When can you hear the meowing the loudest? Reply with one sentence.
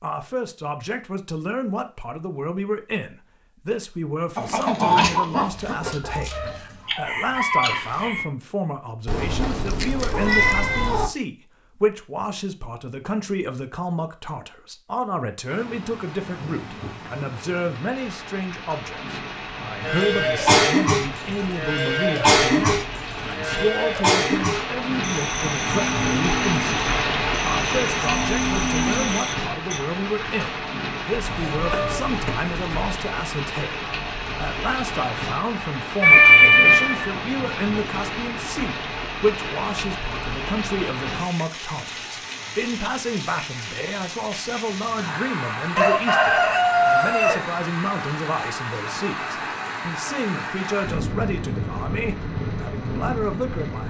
The volume of the meowing peaks at 36 seconds.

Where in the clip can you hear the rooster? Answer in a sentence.
The rooster can be heard from 4.3 to 8.2 s and from 45.8 to 47.4 s.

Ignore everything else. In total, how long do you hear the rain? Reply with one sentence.
The rain can be heard for 38 seconds in total.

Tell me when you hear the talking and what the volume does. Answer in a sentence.
You can hear the talking from 0.0 to 53.8 s, at a steady volume.